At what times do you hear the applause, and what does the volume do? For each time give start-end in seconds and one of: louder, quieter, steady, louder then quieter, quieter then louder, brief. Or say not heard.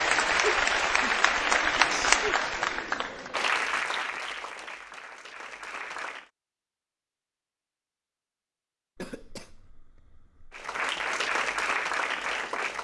0.0-6.3 quieter
10.5-12.7 brief.